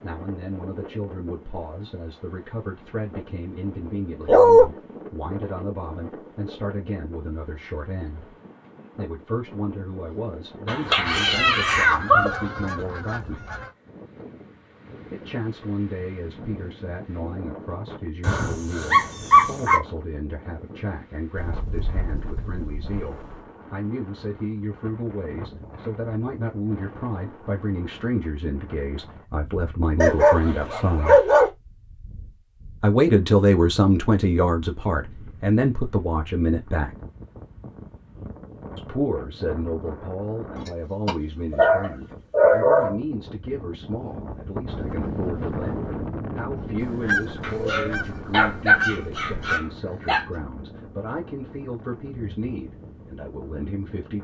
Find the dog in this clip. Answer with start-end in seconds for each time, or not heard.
4.2-4.7, 10.7-12.4, 18.2-19.8, 30.0-31.5, 40.6-43.0, 47.4-50.2.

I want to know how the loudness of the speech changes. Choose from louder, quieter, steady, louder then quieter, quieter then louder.
louder then quieter.